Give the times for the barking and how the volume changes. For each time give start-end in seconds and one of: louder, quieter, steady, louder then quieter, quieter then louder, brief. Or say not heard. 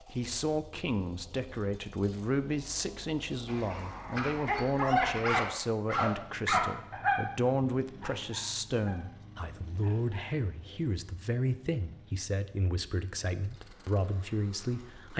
3.5-10.3 quieter.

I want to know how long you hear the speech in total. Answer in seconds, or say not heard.
15 s.